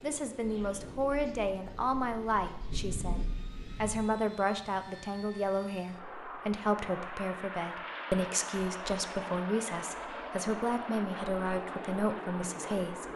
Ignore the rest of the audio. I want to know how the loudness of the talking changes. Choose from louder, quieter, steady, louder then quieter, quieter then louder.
steady.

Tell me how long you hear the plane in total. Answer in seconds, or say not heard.
13 s.